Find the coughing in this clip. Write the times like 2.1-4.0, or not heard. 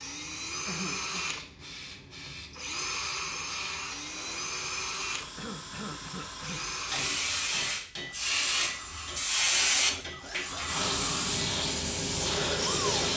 0.7-1.2, 5.3-6.7, 9.8-10.7.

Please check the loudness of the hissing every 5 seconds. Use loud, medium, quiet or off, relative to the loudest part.
quiet, loud, loud.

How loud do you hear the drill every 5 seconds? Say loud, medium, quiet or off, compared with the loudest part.
loud, medium, loud.